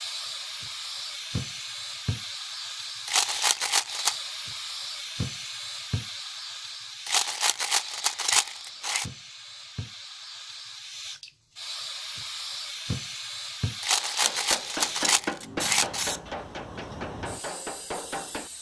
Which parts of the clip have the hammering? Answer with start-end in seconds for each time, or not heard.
13.9-18.5.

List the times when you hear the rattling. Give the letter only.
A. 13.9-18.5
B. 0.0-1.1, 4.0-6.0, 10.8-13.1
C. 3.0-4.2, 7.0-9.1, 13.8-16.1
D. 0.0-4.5
C.